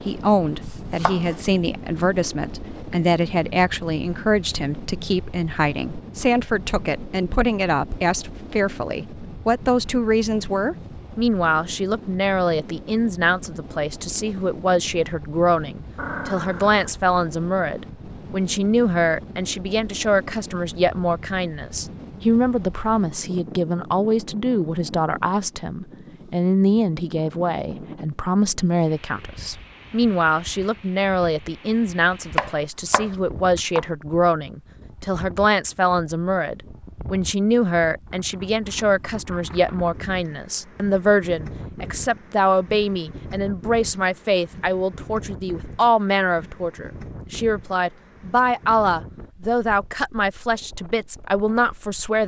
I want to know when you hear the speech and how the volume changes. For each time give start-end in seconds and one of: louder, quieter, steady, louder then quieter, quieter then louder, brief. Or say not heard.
0.1-52.2 steady.